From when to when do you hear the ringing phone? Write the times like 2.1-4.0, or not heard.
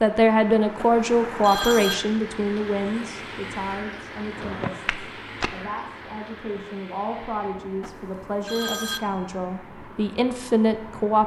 0.8-1.9, 7.8-9.0.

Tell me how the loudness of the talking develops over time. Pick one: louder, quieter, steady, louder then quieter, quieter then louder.
quieter then louder.